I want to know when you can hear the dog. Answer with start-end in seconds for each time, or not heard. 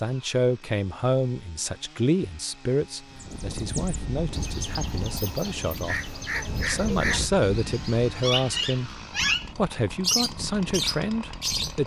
not heard.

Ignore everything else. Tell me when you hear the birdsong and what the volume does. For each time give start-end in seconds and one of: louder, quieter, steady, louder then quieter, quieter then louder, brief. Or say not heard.
3.2-11.8 louder.